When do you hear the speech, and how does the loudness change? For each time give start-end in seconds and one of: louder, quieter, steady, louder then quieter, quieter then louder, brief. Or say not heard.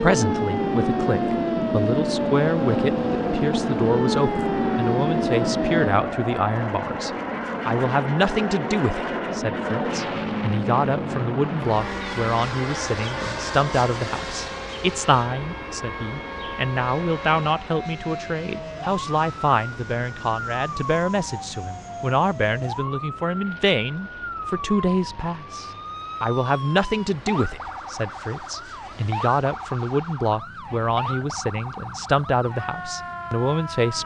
0.0-34.0 steady.